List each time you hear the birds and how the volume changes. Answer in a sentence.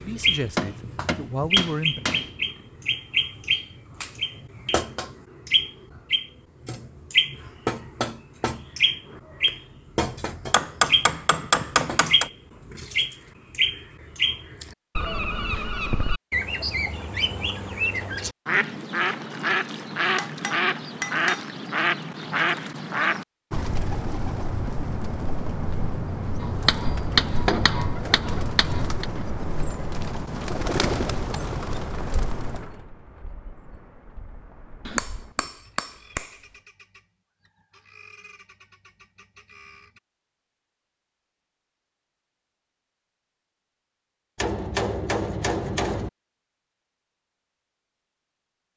The birds can be heard from 0.0 to 40.0 s, getting quieter.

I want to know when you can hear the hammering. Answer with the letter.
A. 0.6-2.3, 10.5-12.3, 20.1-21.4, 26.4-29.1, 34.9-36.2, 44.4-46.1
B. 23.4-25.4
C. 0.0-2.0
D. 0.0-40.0
A.